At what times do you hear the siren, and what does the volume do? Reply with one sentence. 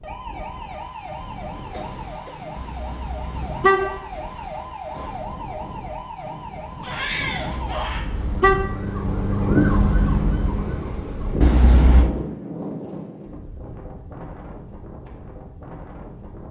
The siren can be heard from 0.0 to 11.4 s, getting louder.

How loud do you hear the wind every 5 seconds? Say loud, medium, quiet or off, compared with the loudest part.
medium, loud, loud, medium.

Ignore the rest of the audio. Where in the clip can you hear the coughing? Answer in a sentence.
You can hear the coughing from 1.7 to 2.4 s.